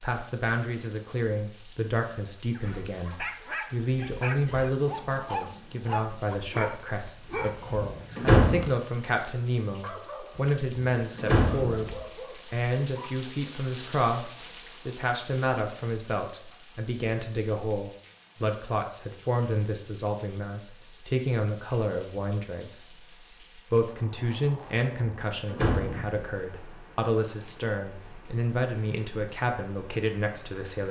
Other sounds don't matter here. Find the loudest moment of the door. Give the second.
8 s.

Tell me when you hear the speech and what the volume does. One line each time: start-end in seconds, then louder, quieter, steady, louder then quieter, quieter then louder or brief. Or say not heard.
0.0-30.8 steady.